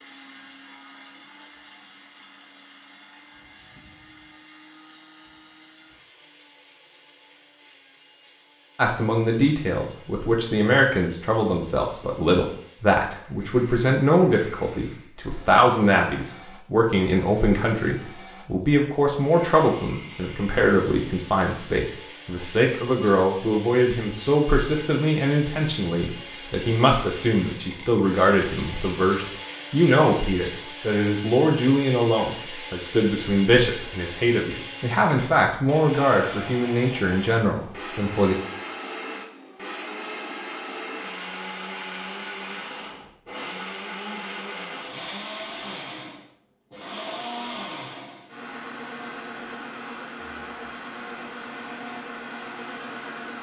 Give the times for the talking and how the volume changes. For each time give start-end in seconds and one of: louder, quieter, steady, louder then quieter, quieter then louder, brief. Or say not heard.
8.8-38.4 steady.